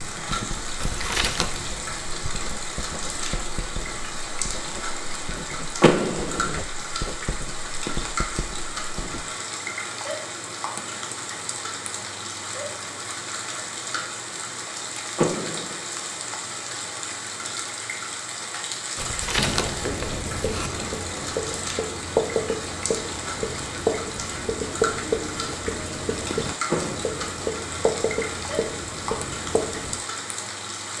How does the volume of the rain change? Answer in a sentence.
The volume of the rain stays about the same.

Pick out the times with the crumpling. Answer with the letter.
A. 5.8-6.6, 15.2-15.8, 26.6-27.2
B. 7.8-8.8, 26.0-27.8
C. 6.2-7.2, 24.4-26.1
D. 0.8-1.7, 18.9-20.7
D.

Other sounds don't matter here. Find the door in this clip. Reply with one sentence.
The door can be heard from 5.8 to 6.6 s, from 15.2 to 15.8 s and from 26.6 to 27.2 s.